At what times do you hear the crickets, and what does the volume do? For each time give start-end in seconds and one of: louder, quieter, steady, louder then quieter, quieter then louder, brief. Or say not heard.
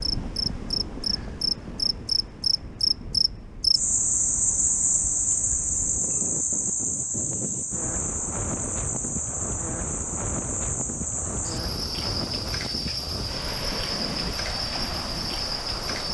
0.0-16.0 quieter.